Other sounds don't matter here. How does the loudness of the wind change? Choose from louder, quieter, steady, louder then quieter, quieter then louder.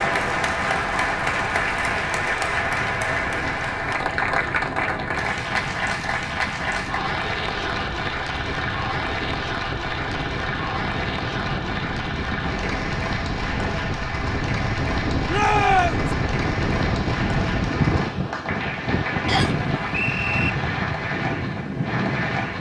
louder.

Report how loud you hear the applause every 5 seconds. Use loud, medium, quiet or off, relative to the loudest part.
loud, loud, medium, medium, medium.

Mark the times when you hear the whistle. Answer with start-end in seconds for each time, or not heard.
19.2-20.5.